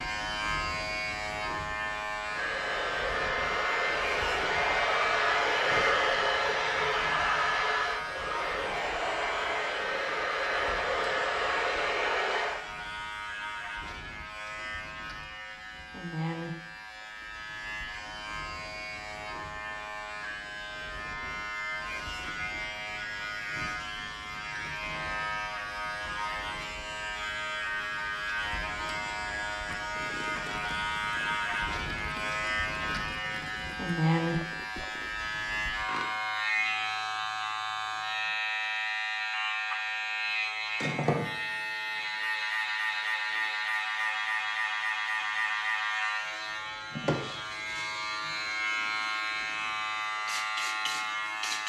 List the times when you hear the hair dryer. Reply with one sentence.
The hair dryer can be heard from 2.2 to 12.7 s.